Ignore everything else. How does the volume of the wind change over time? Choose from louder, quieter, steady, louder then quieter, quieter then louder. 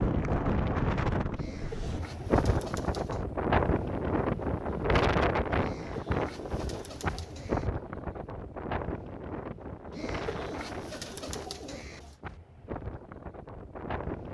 quieter.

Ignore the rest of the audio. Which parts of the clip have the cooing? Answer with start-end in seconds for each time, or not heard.
1.4-3.2, 5.6-7.7, 9.9-12.2.